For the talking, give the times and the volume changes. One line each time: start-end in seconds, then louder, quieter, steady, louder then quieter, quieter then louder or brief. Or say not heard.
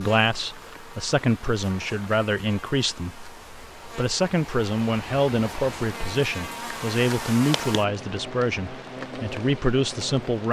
0.0-10.4 steady.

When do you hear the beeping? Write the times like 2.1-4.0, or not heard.
not heard.